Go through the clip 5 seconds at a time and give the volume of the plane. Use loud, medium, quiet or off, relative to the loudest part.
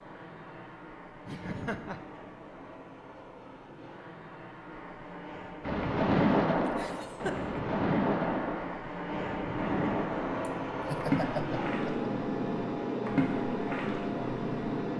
quiet, medium, loud.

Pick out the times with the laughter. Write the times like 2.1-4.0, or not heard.
1.2-2.0, 6.7-7.6, 10.4-12.0.